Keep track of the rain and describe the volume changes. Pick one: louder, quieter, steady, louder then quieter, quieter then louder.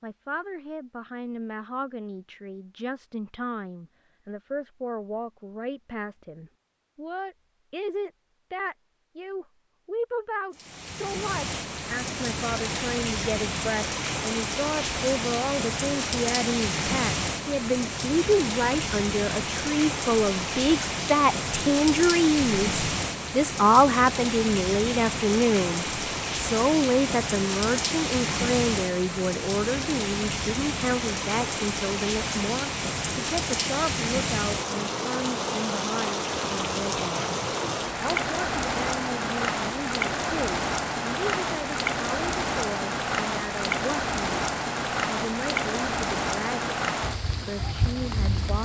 steady.